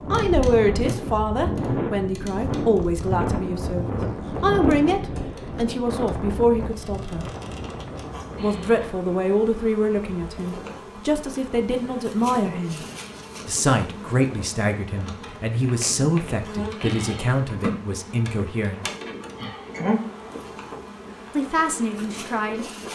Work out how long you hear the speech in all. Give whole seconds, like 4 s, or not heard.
18 s.